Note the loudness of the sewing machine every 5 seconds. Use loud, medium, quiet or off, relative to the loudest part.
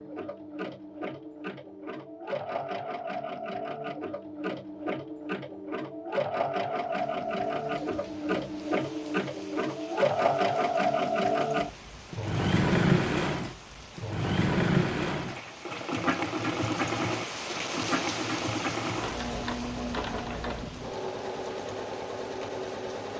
medium, medium, loud, medium, medium.